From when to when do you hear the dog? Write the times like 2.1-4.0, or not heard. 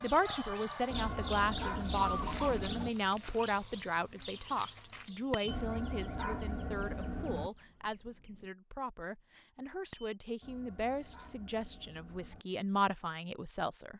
0.9-2.9, 5.5-7.5, 10.4-12.4.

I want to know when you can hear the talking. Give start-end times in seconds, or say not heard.
0.0-13.9.